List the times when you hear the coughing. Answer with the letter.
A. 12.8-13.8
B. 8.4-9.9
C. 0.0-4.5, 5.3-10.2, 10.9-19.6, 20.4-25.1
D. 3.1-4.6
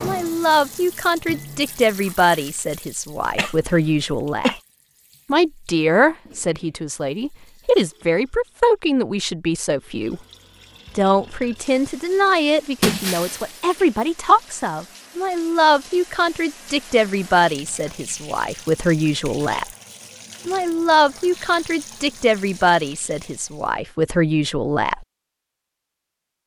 D.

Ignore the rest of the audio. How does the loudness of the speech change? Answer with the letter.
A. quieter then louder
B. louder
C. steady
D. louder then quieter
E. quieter
C.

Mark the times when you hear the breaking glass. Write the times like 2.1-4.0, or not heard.
12.8-13.8.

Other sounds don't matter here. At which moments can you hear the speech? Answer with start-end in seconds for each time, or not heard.
0.0-4.5, 5.3-10.2, 10.9-19.6, 20.4-25.1.